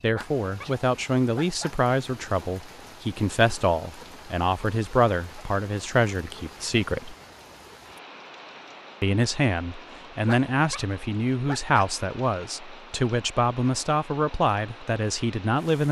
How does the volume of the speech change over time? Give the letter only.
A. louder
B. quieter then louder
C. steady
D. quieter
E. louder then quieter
C.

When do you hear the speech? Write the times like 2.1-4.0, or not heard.
0.0-7.2, 9.0-15.8.